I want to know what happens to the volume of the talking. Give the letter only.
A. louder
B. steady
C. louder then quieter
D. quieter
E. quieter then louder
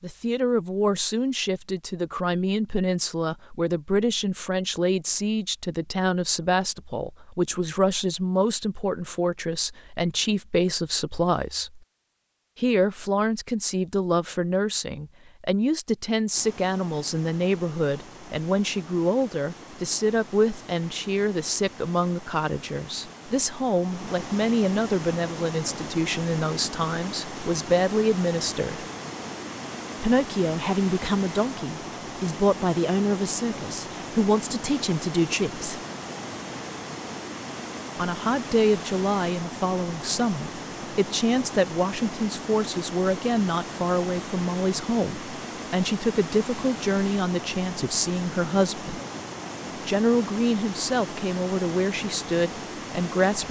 B.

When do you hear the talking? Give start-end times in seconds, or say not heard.
0.0-11.8, 12.6-28.9, 30.0-35.8, 38.0-49.0, 49.9-53.4.